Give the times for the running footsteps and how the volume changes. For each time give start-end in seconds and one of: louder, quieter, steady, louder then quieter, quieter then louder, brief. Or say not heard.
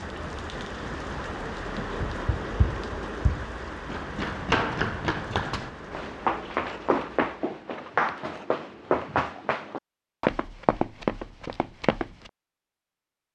1.8-12.3 louder.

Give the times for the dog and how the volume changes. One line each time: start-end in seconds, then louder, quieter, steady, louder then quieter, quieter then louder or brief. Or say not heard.
not heard.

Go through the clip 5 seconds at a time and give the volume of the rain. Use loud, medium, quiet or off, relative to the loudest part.
loud, medium, off.